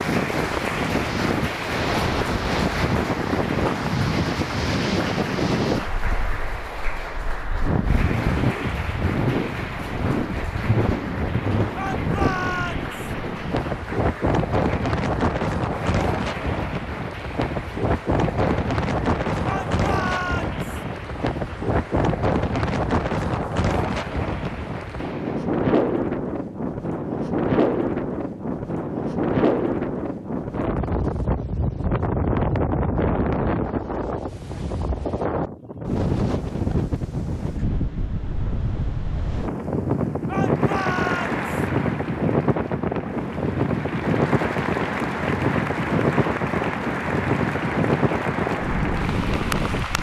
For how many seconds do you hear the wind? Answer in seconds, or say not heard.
50 s.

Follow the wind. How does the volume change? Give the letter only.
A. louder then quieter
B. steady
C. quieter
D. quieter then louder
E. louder
B.